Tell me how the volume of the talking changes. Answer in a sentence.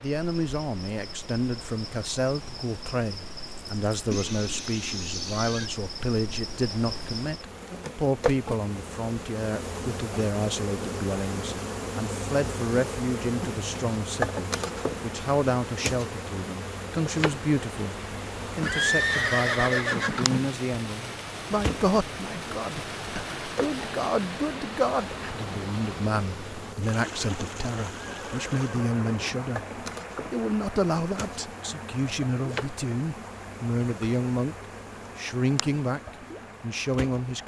The volume of the talking stays about the same.